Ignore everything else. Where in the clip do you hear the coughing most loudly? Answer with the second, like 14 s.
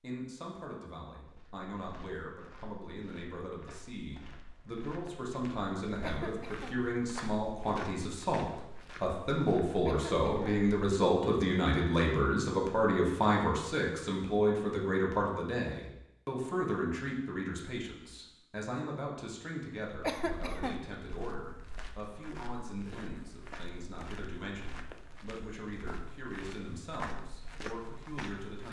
20 s.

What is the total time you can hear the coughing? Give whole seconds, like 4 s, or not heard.
2 s.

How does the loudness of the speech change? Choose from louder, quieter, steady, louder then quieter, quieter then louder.
louder then quieter.